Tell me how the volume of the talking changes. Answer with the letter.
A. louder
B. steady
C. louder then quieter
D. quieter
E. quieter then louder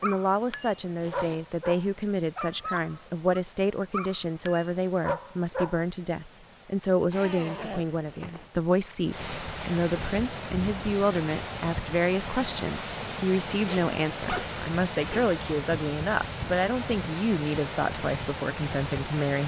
B.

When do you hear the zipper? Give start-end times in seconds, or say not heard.
0.9-1.4, 7.1-8.5, 13.6-15.3.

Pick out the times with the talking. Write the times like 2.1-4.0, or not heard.
0.0-19.4.